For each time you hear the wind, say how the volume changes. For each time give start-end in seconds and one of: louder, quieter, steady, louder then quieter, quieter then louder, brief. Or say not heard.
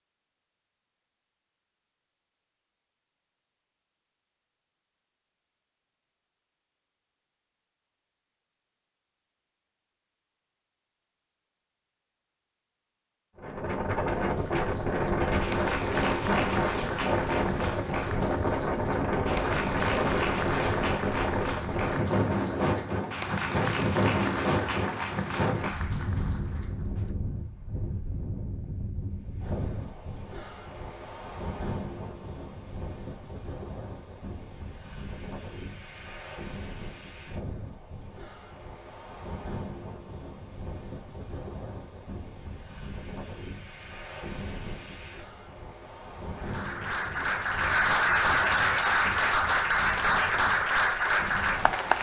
13.3-51.9 quieter.